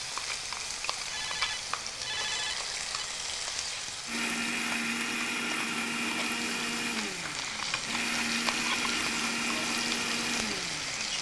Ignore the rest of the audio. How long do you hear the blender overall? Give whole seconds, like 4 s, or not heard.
7 s.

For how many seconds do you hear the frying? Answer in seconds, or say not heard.
11 s.